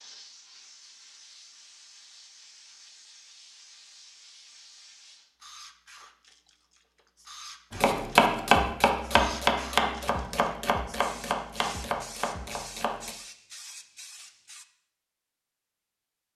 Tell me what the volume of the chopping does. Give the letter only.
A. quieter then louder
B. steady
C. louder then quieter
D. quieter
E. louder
D.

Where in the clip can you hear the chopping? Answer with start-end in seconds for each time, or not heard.
7.7-13.2.